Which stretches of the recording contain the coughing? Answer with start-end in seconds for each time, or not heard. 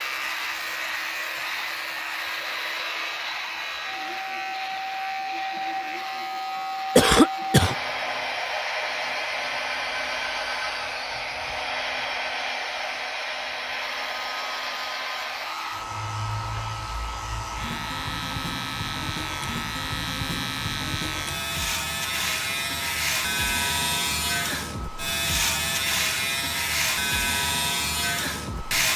7.0-7.8.